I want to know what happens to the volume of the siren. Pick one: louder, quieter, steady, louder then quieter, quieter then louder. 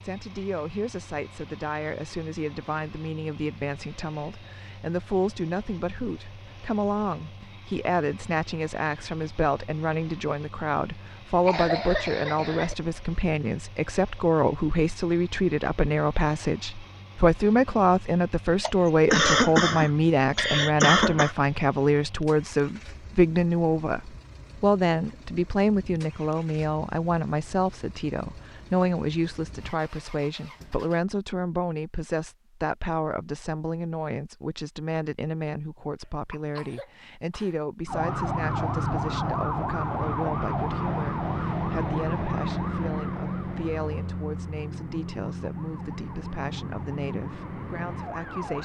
quieter.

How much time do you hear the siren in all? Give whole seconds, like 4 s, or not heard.
11 s.